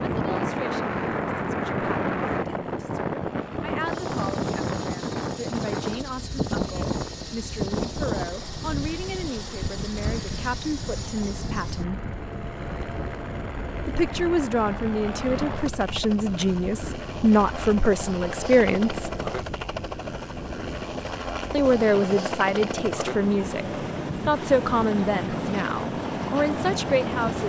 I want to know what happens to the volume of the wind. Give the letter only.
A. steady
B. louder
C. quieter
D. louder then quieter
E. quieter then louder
C.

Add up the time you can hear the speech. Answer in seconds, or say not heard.
23 s.